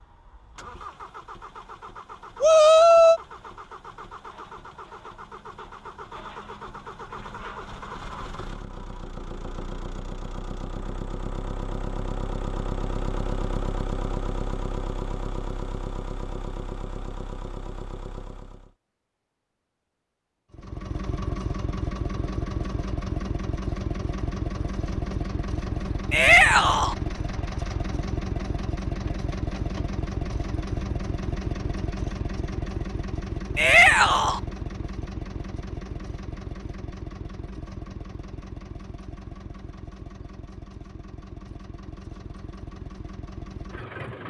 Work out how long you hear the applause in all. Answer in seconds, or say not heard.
not heard.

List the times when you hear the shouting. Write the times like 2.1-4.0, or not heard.
2.4-3.2, 26.1-26.9, 33.5-34.4.